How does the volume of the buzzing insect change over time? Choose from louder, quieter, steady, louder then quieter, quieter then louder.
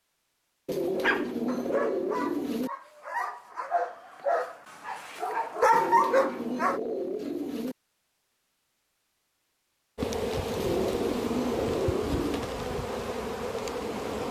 steady.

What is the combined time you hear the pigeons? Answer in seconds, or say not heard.
6 s.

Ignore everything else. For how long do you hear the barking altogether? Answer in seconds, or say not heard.
6 s.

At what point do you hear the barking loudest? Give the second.
6 s.